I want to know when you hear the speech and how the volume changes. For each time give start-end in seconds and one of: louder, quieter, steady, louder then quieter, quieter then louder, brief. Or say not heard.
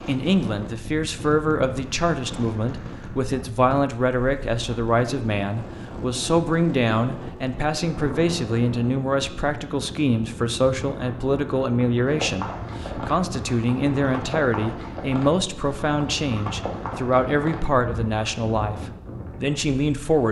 0.1-20.2 steady.